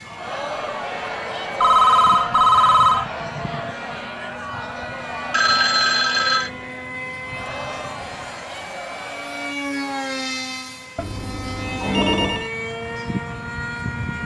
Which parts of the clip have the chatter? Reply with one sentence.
The chatter can be heard from 0.0 to 9.6 s.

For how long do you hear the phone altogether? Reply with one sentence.
The phone can be heard for 4 seconds in total.